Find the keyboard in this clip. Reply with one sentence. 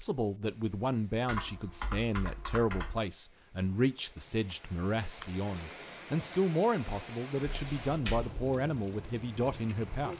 The keyboard can be heard from 1.2 to 3.0 s and from 7.5 to 8.3 s.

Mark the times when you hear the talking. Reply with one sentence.
You can hear the talking from 0.0 to 10.1 s.